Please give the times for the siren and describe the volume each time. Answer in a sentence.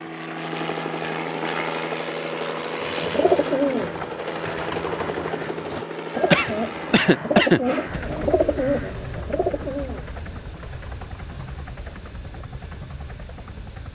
The siren can't be heard in this clip.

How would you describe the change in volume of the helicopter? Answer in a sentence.
The volume of the helicopter goes down.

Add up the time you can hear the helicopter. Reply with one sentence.
You can hear the helicopter for 14 seconds altogether.